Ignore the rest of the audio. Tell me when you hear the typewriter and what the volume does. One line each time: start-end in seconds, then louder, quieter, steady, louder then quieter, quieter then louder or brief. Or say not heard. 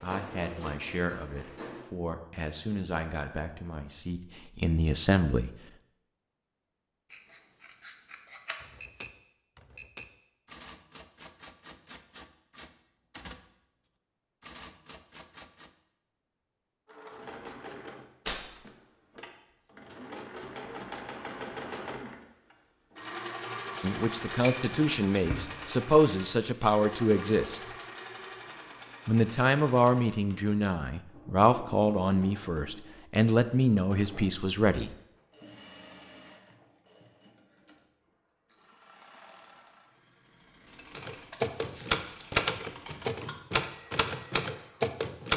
8.6-15.7 steady
41.0-45.3 quieter then louder.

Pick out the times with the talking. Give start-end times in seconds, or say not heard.
0.0-5.5, 23.8-27.6, 29.1-35.0.